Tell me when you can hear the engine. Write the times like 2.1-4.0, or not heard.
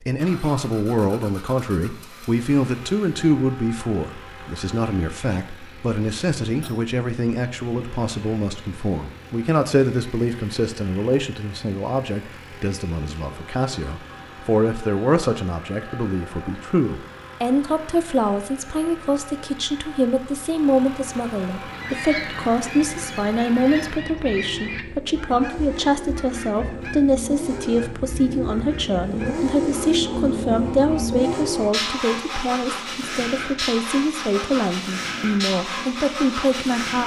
0.0-37.0.